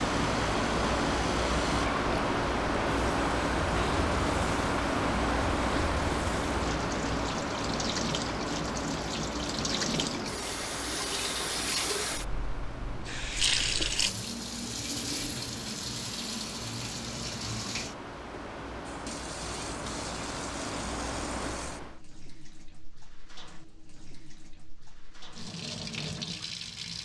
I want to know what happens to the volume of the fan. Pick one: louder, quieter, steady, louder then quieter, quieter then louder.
quieter then louder.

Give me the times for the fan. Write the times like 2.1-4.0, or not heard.
0.0-22.0.